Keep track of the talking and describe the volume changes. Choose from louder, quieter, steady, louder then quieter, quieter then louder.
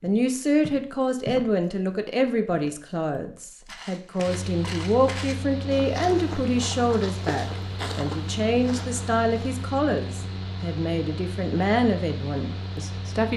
steady.